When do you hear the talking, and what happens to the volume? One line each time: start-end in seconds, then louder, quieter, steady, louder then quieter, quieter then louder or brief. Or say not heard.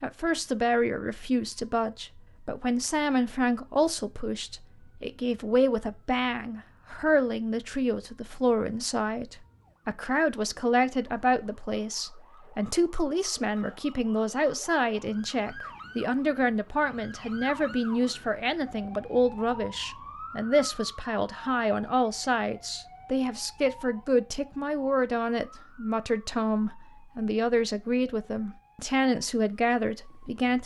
0.0-30.6 steady.